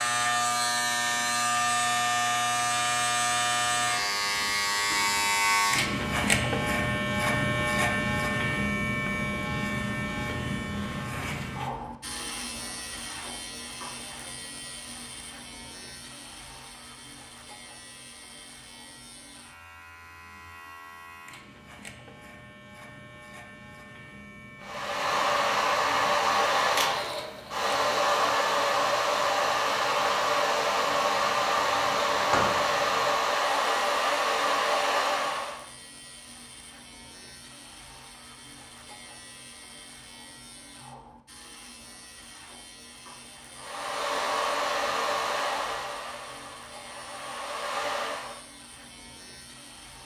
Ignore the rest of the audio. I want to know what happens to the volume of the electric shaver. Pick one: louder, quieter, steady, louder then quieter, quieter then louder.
quieter.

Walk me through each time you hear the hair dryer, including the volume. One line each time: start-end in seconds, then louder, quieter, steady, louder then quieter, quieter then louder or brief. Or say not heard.
24.6-35.6 steady
43.5-48.4 quieter then louder.